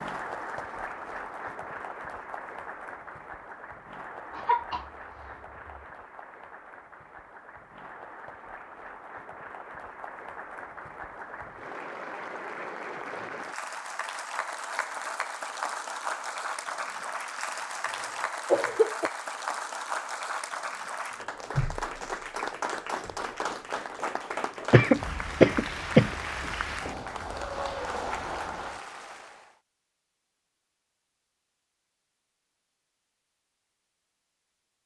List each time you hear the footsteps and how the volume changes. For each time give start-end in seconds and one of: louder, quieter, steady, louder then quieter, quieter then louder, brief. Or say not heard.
not heard.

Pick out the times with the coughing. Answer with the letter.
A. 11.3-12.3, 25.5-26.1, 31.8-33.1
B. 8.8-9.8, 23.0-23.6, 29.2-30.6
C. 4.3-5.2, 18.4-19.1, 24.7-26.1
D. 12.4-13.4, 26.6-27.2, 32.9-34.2
C.